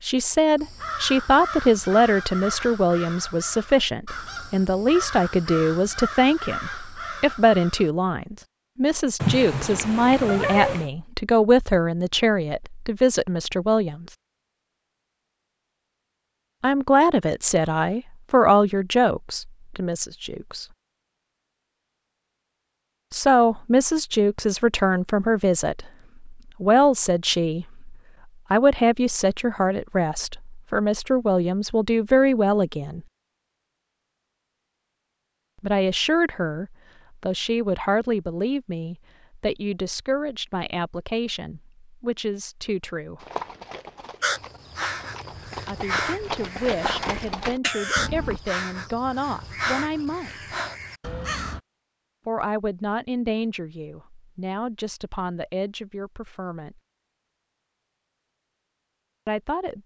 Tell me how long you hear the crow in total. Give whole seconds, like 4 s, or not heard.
15 s.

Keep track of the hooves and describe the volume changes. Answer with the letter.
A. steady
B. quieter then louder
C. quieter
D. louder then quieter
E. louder
E.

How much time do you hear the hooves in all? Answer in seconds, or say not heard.
5 s.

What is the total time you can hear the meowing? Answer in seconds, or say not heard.
2 s.